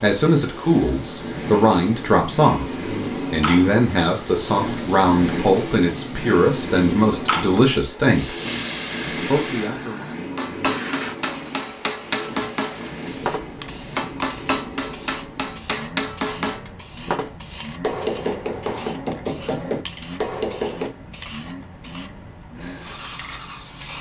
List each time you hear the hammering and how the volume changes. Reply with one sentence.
The hammering can be heard from 10.3 to 20.9 s, at a steady volume.